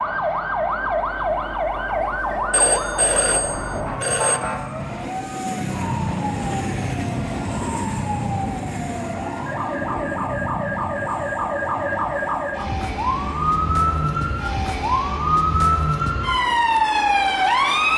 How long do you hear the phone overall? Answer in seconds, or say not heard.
2 s.